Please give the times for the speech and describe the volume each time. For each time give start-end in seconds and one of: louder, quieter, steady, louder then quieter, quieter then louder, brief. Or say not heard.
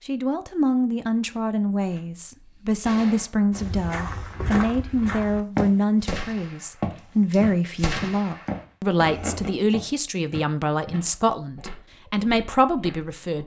0.1-13.4 steady.